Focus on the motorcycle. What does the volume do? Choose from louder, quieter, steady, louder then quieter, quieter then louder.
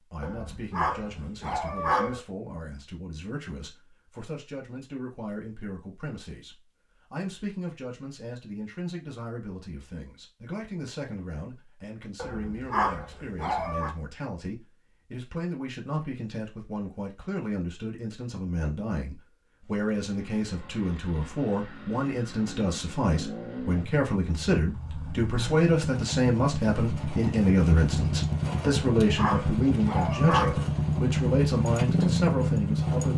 louder.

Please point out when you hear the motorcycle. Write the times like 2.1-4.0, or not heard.
19.6-33.1.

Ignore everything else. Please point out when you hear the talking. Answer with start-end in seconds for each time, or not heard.
0.0-33.1.